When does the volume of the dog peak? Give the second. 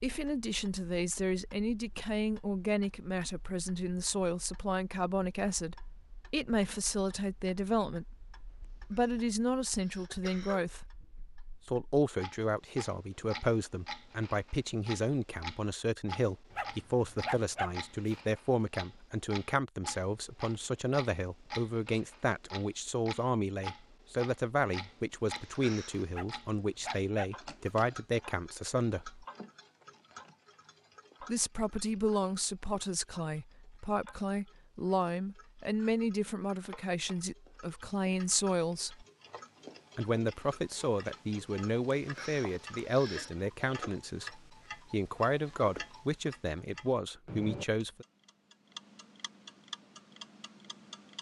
17 s.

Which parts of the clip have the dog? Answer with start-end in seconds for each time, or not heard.
16.5-18.1, 26.1-27.8.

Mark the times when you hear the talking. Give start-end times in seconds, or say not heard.
0.0-8.2, 8.9-10.9, 11.7-29.2, 31.2-39.0, 40.0-48.0.